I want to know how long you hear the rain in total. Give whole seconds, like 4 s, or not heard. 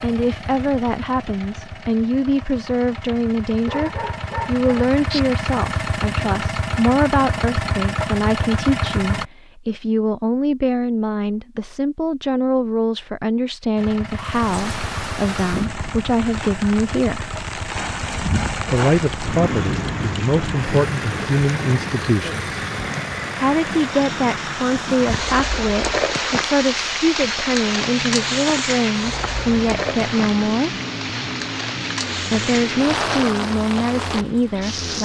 21 s.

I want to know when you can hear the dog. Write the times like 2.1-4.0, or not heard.
3.6-5.2.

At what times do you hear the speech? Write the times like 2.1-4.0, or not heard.
0.0-17.3, 18.7-22.4, 23.4-30.7, 32.3-35.0.